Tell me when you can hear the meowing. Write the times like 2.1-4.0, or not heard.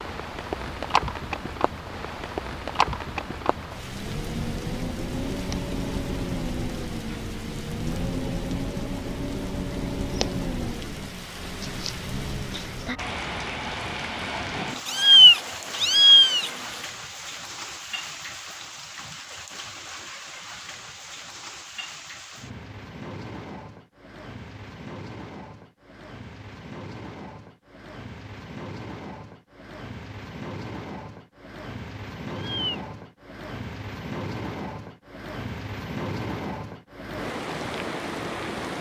14.8-16.5, 32.3-32.8.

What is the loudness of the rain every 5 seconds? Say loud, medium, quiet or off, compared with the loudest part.
loud, loud, loud, medium, medium, medium, medium, loud.